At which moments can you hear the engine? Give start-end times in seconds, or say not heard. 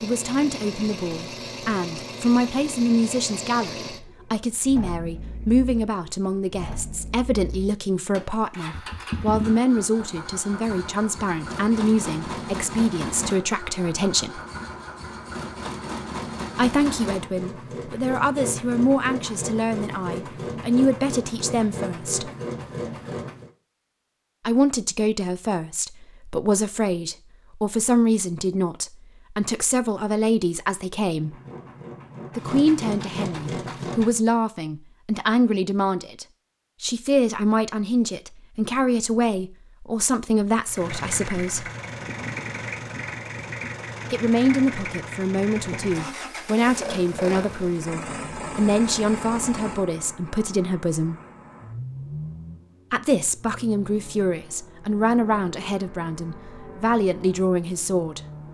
0.0-23.5, 31.1-34.2, 40.6-58.4.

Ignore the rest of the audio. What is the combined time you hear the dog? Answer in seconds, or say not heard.
not heard.